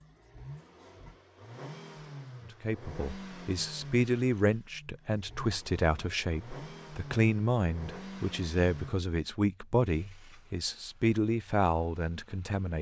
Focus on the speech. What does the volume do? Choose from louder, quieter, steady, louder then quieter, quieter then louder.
steady.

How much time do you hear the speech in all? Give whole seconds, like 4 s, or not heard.
10 s.